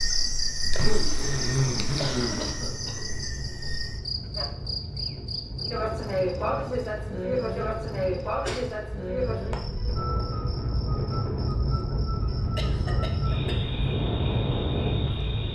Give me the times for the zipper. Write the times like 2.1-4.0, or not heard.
0.6-2.5.